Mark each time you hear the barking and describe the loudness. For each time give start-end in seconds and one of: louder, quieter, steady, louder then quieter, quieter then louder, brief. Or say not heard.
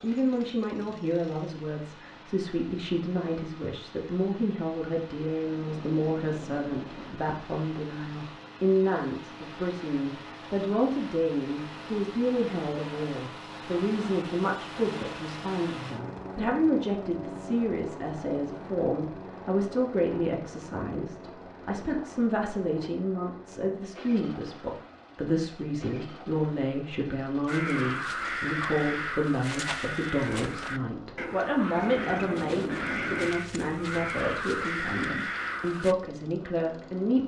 not heard.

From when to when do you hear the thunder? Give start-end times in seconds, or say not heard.
5.5-7.2, 31.6-33.3.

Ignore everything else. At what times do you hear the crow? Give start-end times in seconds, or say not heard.
27.4-36.0.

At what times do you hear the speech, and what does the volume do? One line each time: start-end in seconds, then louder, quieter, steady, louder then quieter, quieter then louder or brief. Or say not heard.
0.0-37.2 steady.